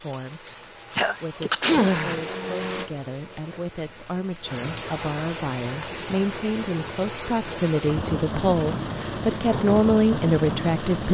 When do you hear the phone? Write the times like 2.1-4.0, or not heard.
not heard.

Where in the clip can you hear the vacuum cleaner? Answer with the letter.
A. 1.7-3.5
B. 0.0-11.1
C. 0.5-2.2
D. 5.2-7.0
A.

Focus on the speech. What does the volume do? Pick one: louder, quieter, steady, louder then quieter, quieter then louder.
louder.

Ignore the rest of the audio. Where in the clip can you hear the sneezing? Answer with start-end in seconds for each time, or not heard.
0.5-2.2.